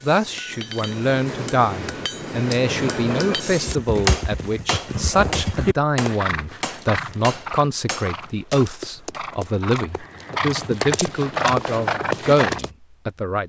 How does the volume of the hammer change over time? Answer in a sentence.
The loudness of the hammer goes up, then down.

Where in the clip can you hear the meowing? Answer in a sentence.
The meowing can't be heard in this clip.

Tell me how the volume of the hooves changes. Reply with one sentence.
The volume of the hooves goes down, then up.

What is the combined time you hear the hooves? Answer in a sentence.
The hooves can be heard for 9 seconds in total.